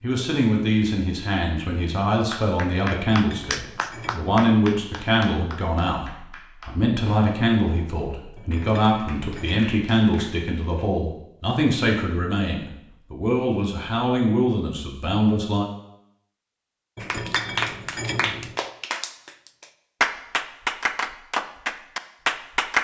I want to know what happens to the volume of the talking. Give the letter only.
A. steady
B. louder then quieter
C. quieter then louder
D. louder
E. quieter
A.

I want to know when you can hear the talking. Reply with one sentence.
You can hear the talking from 0.0 to 15.7 s.